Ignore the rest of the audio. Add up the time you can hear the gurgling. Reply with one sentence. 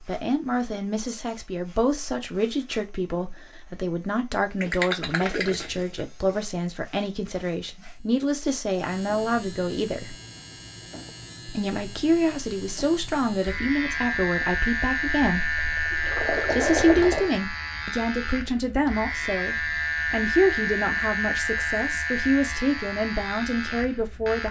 You can hear the gurgling for 4 seconds altogether.